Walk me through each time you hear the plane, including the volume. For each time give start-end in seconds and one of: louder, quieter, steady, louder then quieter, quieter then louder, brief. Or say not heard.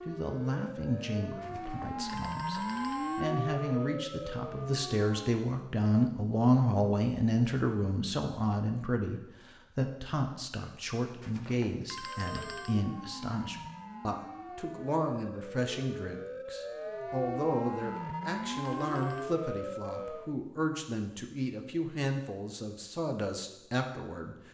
not heard.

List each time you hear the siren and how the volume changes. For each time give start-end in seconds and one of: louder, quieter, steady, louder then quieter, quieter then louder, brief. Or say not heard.
0.0-5.5 louder then quieter
12.0-20.4 louder.